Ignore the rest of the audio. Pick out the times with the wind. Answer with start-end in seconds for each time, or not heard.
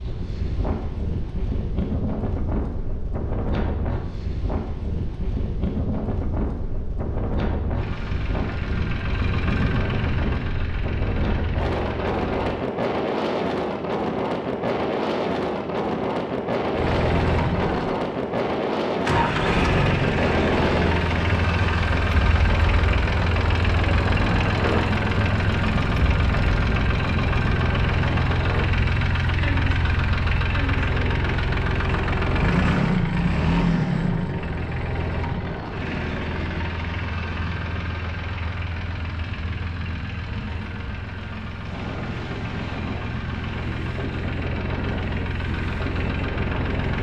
0.0-46.9.